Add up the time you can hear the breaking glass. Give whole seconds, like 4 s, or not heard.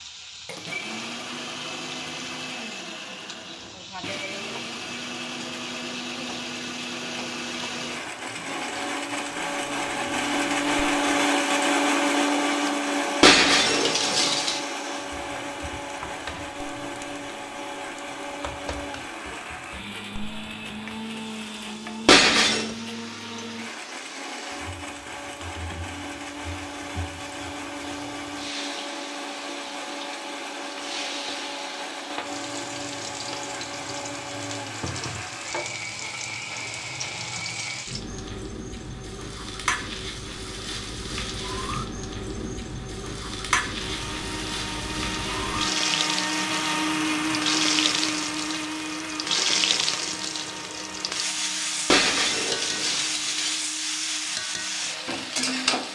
4 s.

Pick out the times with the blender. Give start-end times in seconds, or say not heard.
0.0-37.9, 43.8-55.9.